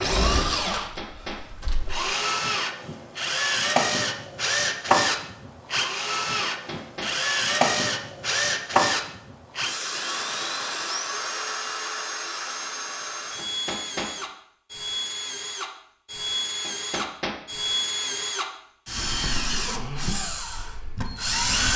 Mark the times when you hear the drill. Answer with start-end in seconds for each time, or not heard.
0.0-21.7.